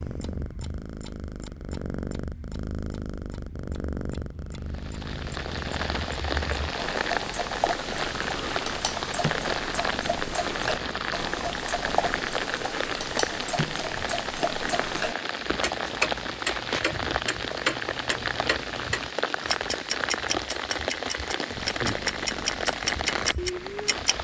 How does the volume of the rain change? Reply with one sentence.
The volume of the rain stays about the same.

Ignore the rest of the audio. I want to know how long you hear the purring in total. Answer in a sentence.
You can hear the purring for 15 seconds altogether.